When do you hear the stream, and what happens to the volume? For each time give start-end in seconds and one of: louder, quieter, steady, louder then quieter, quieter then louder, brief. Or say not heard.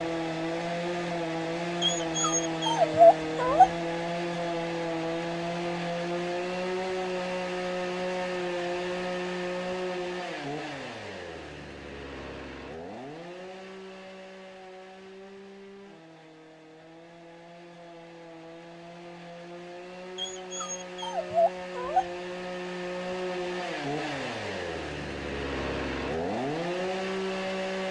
not heard.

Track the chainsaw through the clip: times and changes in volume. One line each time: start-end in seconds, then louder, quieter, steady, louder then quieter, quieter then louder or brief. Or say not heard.
0.0-27.8 quieter then louder.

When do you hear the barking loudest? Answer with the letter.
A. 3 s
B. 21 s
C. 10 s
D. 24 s
A.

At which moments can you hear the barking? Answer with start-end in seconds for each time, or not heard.
1.8-3.7, 20.1-22.1.